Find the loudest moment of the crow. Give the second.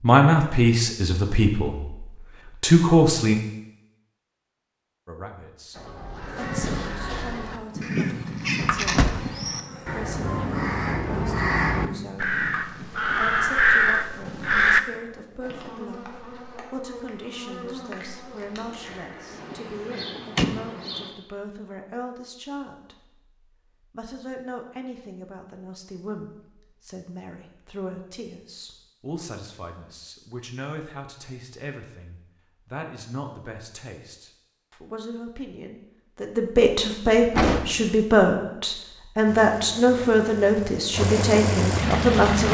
14 s.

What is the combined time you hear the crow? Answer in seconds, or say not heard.
9 s.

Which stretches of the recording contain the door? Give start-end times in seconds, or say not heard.
8.8-9.3, 19.5-20.7, 37.3-38.0.